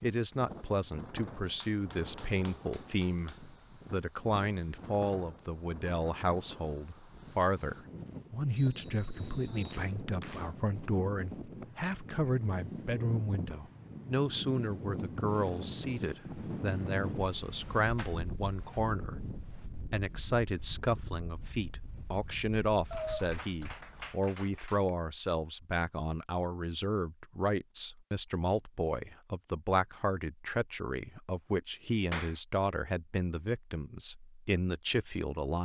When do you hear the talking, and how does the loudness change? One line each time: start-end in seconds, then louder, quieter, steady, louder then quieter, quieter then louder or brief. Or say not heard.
0.0-35.6 steady.